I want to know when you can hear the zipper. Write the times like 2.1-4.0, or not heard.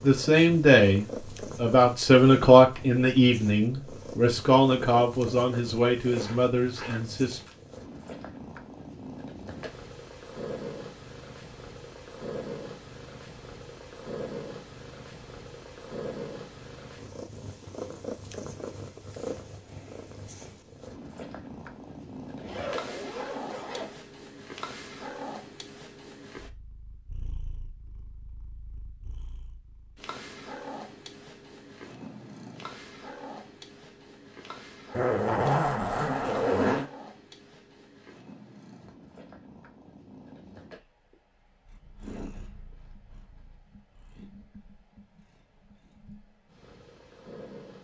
6.0-7.6, 22.4-24.0, 34.9-36.9.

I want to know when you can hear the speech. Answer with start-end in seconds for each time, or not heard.
0.0-7.4.